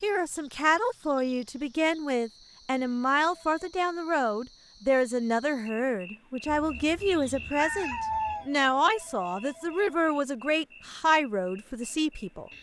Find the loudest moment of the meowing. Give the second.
8 s.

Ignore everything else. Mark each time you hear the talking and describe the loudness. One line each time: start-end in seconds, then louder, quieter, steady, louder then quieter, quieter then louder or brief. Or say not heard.
0.0-12.5 steady.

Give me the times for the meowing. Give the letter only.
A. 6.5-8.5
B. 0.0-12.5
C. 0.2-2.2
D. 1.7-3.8
A.